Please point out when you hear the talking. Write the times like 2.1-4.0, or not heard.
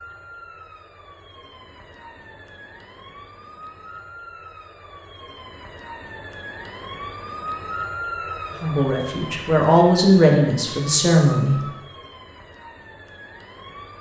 8.6-11.6.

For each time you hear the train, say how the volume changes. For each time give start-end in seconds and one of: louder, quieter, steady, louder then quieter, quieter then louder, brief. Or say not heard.
not heard.